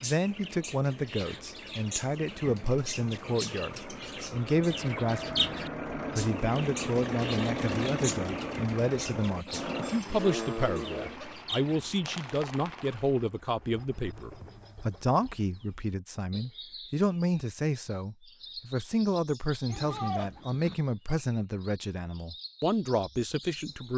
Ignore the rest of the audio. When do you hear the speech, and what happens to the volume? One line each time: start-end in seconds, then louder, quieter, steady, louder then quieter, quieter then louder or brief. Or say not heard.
0.0-23.9 steady.